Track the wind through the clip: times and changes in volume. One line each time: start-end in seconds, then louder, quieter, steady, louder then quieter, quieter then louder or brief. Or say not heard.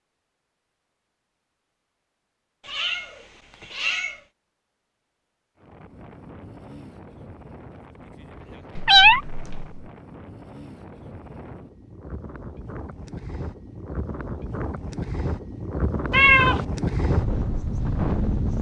5.5-18.5 louder.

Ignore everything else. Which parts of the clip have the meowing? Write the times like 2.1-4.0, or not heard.
2.6-4.2, 8.8-9.8, 16.1-16.6.